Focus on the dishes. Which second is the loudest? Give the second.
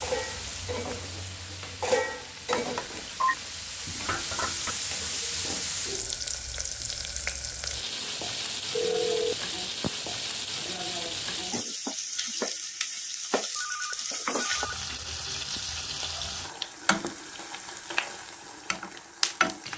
2 s.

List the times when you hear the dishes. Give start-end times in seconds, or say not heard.
0.0-4.8.